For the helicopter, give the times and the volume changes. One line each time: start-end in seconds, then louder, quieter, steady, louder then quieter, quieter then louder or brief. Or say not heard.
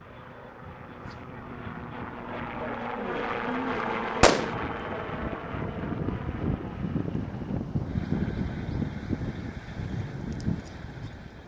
0.0-11.4 louder then quieter.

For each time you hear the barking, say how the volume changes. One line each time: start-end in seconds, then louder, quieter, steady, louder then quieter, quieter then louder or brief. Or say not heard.
not heard.